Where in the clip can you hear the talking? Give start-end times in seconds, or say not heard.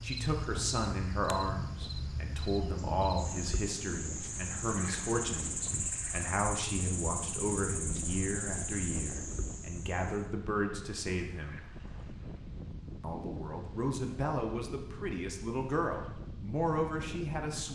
0.0-11.7, 13.0-17.7.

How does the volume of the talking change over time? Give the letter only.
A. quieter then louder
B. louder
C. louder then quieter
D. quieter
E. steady
E.